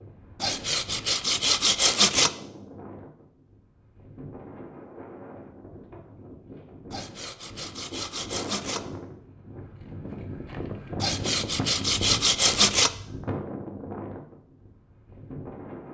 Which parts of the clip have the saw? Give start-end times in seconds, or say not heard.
0.4-2.3, 6.9-8.8, 11.0-12.9.